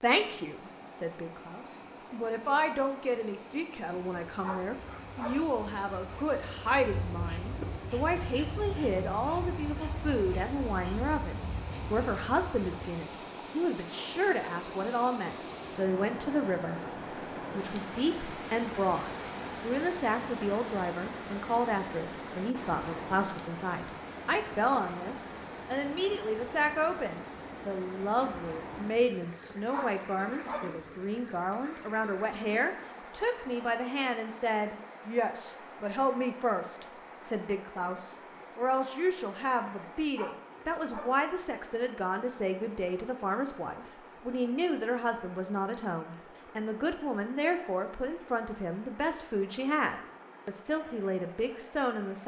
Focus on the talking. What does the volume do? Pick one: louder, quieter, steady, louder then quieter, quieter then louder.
steady.